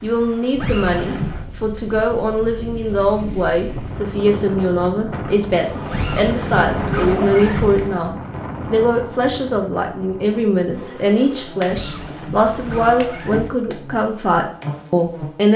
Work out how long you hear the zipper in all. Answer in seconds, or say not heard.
5 s.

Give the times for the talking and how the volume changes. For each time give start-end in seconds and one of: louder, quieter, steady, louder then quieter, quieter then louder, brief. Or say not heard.
0.0-15.5 steady.